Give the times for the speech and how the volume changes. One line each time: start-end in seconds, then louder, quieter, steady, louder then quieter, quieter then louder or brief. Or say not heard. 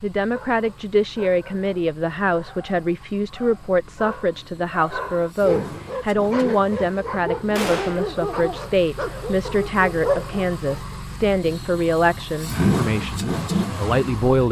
0.0-14.4 steady.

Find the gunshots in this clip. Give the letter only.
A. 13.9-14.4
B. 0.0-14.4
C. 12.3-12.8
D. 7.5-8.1
D.